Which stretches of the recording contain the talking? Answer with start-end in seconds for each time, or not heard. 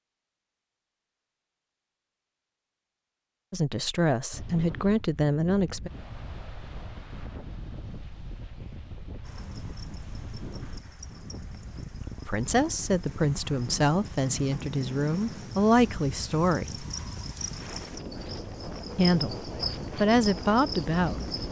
3.5-5.9, 12.2-16.9, 18.9-21.3.